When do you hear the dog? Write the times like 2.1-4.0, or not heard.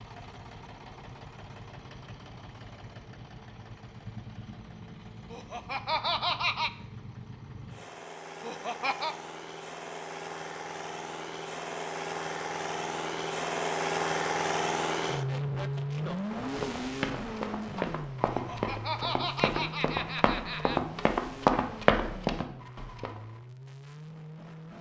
not heard.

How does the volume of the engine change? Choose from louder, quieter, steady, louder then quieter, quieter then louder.
louder then quieter.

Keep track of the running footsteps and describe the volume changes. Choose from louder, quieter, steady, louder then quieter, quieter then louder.
louder.